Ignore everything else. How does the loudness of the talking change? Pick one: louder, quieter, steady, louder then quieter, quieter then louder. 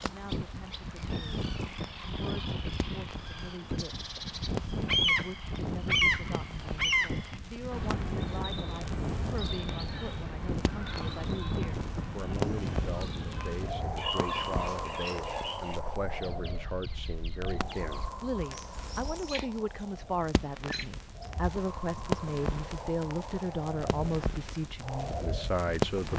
louder.